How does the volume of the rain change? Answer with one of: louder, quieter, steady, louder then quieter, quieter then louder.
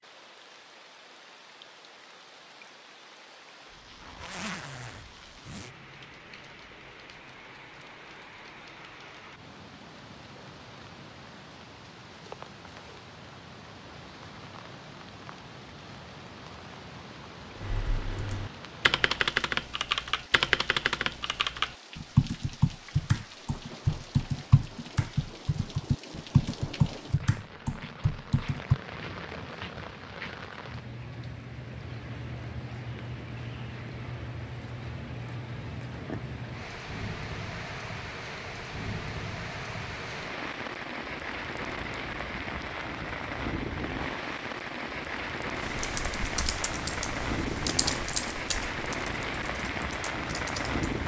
louder.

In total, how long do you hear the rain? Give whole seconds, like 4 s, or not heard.
51 s.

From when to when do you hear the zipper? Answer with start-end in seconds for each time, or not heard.
4.0-5.7.